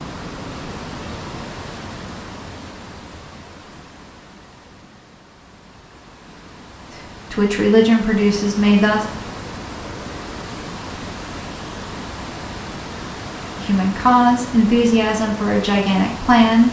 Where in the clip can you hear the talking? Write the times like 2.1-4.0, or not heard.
7.0-9.1, 13.6-16.6.